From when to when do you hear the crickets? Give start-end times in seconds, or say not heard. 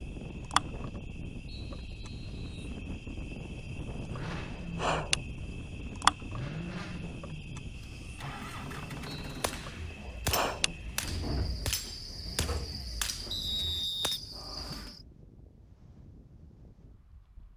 0.0-15.1.